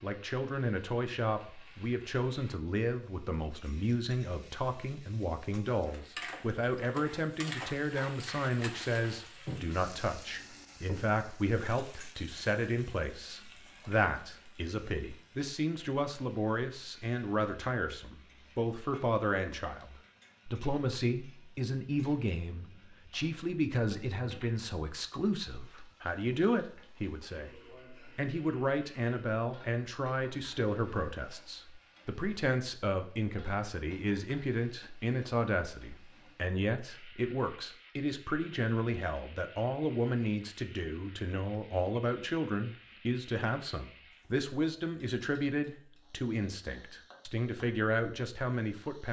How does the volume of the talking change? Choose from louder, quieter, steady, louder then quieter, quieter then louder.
steady.